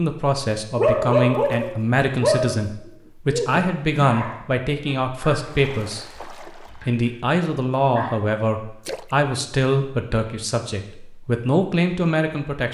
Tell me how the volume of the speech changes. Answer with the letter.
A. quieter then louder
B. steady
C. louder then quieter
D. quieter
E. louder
B.